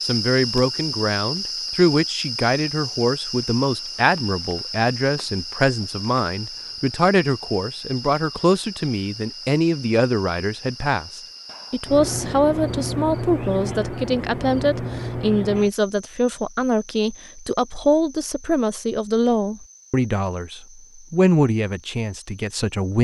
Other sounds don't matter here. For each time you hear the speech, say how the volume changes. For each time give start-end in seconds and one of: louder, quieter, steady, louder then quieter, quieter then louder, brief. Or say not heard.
0.0-22.9 steady.